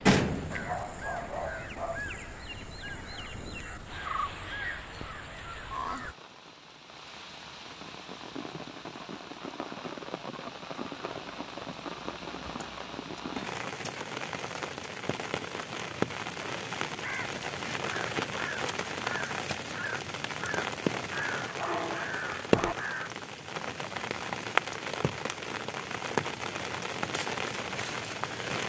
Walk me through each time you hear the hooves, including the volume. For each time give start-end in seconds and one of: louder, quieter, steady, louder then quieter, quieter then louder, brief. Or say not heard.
not heard.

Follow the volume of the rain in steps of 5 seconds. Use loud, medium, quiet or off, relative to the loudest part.
quiet, medium, medium, loud, loud, loud.